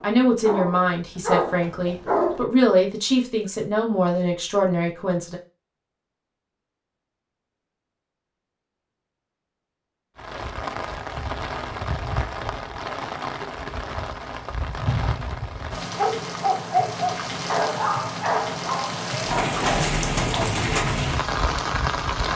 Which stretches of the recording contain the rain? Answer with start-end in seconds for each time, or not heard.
10.2-22.3.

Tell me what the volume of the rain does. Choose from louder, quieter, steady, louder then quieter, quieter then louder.
louder.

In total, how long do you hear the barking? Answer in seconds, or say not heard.
7 s.